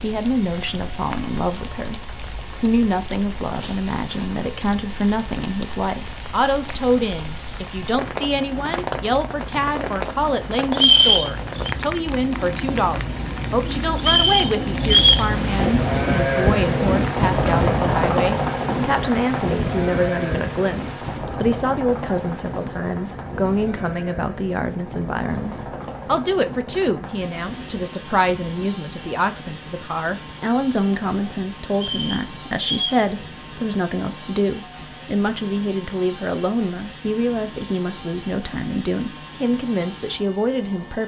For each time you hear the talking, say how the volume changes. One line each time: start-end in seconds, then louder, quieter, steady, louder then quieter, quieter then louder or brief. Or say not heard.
0.0-41.0 steady.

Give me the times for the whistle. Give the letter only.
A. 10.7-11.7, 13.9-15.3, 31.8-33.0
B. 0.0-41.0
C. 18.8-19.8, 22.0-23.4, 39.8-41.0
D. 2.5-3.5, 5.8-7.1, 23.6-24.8
A.